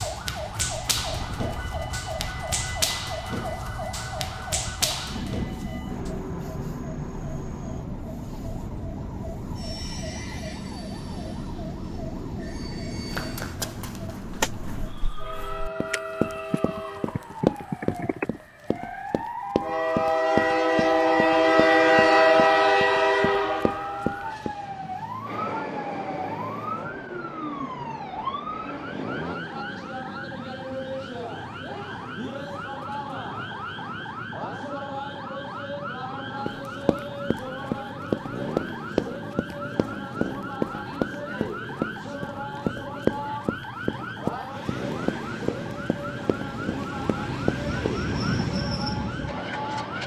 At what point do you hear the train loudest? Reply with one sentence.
The volume of the train peaks at 22 seconds.